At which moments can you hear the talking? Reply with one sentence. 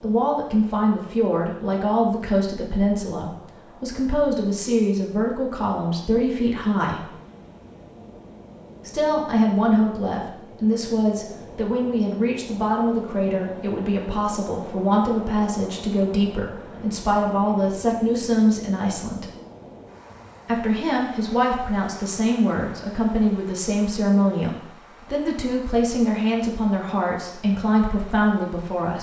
You can hear the talking from 0.0 to 7.0 s, from 8.8 to 19.2 s and from 20.4 to 28.9 s.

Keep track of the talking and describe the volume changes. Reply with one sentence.
The volume of the talking stays about the same.